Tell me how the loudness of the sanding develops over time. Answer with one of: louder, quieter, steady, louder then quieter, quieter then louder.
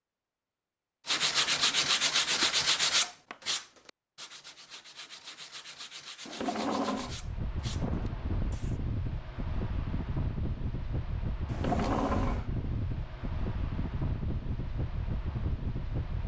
quieter.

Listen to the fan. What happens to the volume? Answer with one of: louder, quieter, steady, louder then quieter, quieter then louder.
steady.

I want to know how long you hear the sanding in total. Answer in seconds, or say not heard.
8 s.